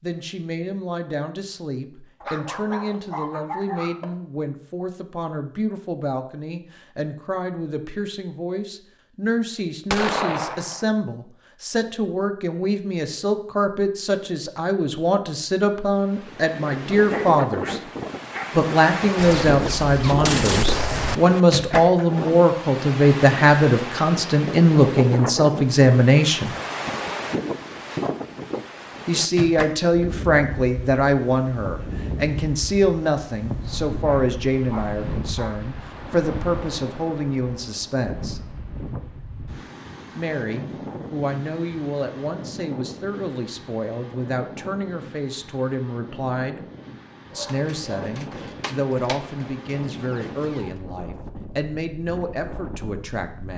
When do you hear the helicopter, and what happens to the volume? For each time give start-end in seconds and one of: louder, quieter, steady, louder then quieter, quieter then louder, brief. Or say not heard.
not heard.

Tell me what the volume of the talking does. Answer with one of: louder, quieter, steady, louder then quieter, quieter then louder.
louder then quieter.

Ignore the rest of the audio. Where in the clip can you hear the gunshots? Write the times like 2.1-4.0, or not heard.
9.9-10.8, 19.1-21.2, 47.5-50.8.